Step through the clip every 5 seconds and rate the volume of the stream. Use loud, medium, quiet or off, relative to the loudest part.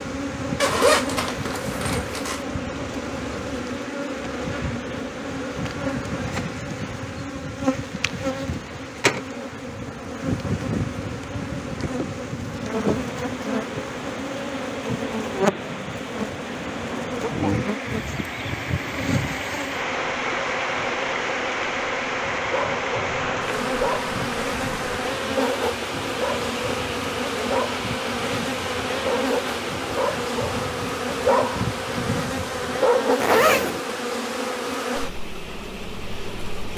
off, off, medium, loud, loud, loud, medium, medium.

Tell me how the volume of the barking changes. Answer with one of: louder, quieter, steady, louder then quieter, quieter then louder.
louder.